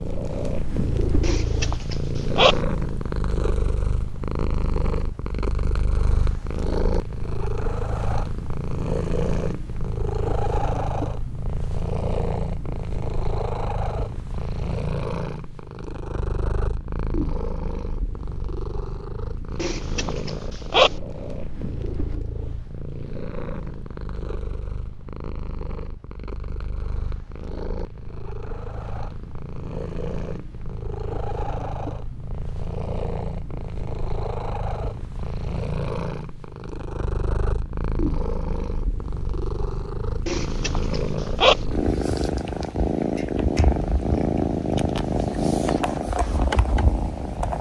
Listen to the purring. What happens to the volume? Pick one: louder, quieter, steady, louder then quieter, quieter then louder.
quieter then louder.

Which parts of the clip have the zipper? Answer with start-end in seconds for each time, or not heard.
1.2-2.5, 19.6-20.9, 40.2-41.6.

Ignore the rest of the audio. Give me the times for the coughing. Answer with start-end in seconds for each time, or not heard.
not heard.